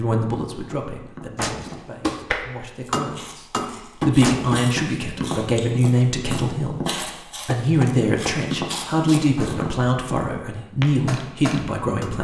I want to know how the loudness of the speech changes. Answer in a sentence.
The volume of the speech goes up.